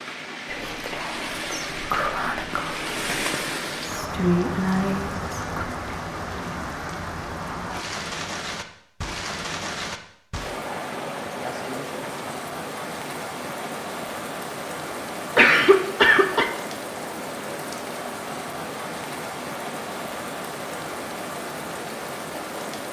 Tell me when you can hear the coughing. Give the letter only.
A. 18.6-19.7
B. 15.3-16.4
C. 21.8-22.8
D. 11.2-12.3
B.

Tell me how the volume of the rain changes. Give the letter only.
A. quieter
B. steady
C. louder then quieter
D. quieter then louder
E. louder
B.